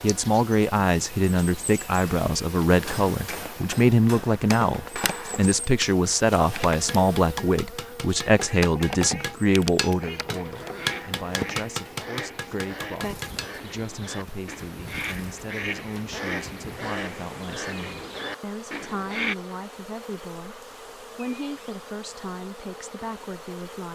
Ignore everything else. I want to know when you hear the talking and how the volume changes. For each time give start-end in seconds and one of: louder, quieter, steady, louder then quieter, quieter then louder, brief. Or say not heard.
0.0-23.8 quieter.